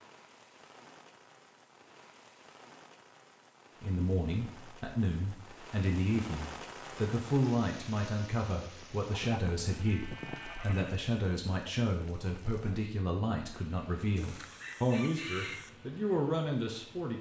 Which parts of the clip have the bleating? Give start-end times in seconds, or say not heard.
9.1-11.1.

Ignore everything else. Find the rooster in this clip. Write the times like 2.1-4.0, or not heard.
14.2-15.7.